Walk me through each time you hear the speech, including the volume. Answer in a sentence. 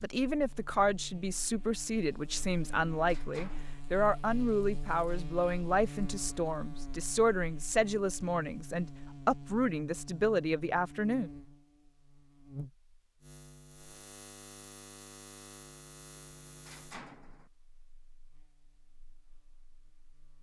The speech can be heard from 0.0 to 11.3 s, at a steady volume.